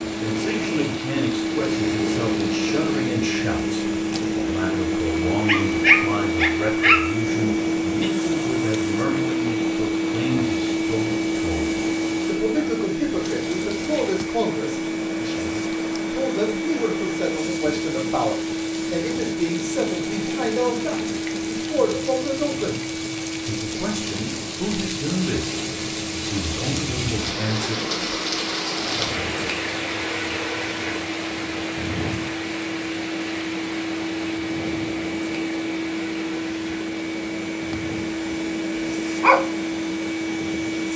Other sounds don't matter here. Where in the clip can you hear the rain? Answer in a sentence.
You can hear the rain from 0.0 to 40.9 s.